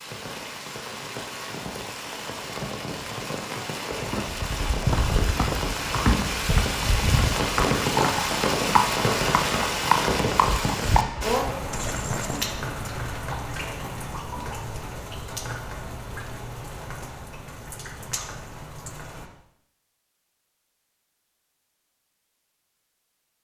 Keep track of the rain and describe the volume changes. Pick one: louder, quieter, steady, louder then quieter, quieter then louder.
louder then quieter.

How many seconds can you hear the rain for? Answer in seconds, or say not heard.
19 s.